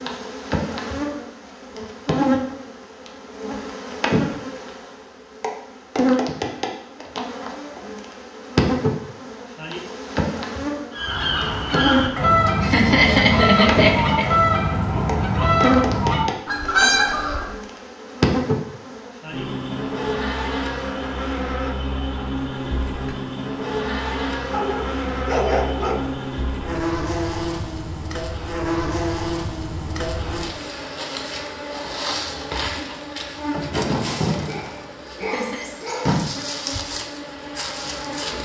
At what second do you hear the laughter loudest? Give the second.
13 s.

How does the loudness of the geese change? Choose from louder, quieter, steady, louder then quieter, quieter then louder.
steady.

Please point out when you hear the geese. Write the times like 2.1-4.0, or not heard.
10.9-17.5.